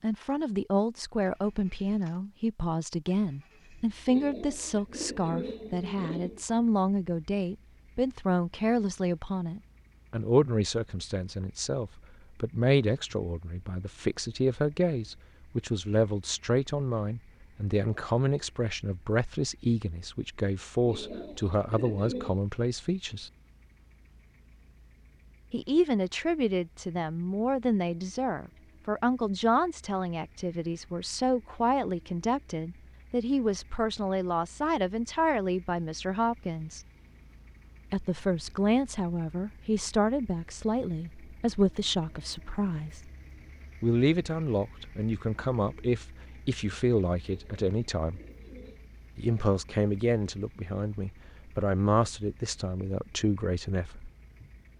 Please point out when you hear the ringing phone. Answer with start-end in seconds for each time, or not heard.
not heard.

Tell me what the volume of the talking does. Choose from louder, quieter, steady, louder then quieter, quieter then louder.
steady.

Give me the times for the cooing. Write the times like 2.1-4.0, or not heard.
4.0-6.4, 20.9-22.4, 47.2-48.9.